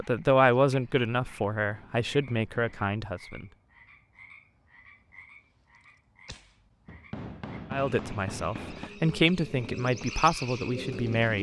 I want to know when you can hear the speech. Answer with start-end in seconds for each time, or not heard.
0.0-3.5, 7.7-11.3.